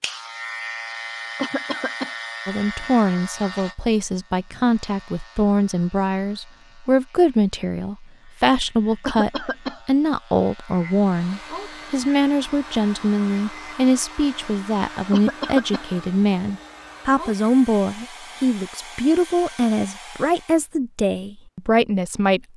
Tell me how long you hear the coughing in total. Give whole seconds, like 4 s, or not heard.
2 s.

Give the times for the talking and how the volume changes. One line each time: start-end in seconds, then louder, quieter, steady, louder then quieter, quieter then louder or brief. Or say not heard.
2.5-22.5 steady.